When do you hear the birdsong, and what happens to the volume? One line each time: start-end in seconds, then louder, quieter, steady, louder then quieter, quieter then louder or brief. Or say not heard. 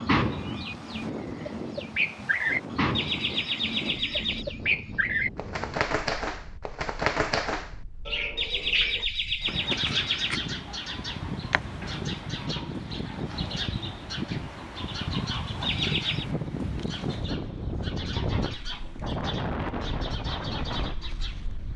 0.0-21.7 quieter.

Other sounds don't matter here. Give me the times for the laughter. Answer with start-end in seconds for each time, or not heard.
3.0-4.5, 8.3-10.3, 15.7-16.2.